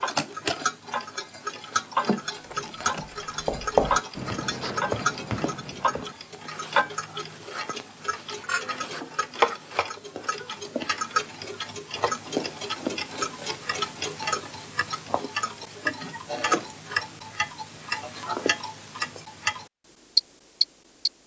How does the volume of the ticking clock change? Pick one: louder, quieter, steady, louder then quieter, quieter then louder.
steady.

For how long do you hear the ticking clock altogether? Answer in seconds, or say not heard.
21 s.